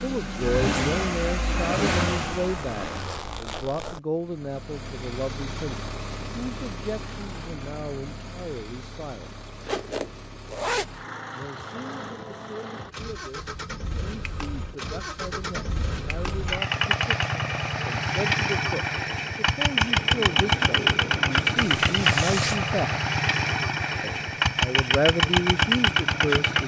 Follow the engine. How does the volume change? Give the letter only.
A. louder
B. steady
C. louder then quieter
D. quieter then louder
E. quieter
D.